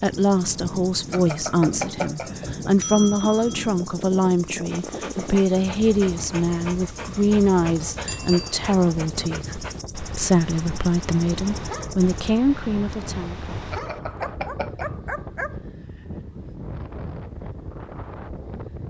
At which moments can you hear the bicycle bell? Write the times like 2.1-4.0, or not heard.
1.1-3.7, 8.1-8.6, 13.7-14.9.